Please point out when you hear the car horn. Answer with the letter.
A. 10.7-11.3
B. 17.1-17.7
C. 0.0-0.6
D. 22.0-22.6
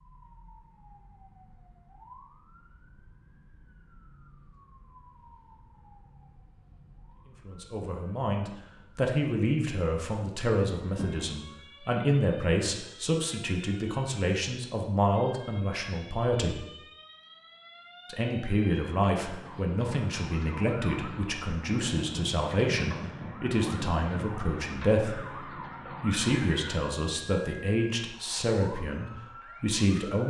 A.